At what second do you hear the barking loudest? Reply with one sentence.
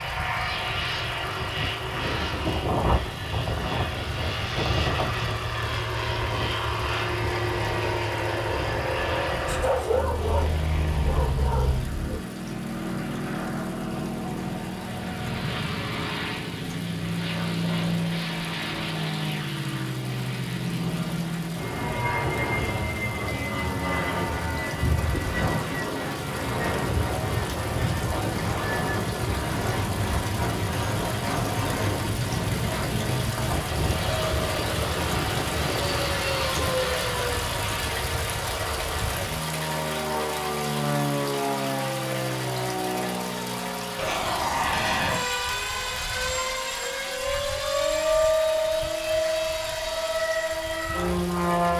The volume of the barking peaks at 10 seconds.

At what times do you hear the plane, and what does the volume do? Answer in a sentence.
The plane can be heard from 0.0 to 51.7 s, at a steady volume.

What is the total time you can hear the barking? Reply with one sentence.
The barking can be heard for 3 seconds in total.